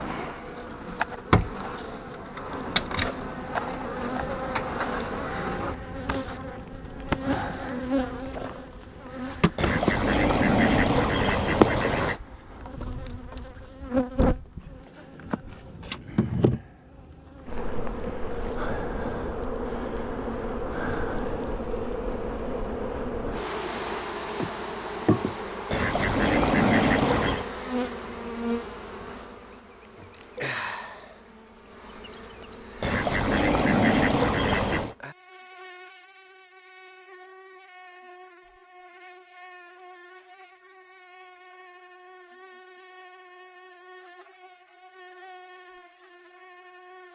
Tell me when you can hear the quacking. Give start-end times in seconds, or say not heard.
9.6-12.2, 25.7-27.4, 32.8-35.0.